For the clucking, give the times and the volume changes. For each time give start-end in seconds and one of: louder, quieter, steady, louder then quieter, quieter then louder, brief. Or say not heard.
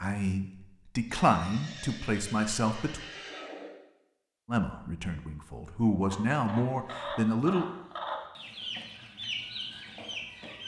6.0-10.6 steady.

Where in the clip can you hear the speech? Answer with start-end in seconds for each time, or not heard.
0.0-3.0, 4.5-7.7.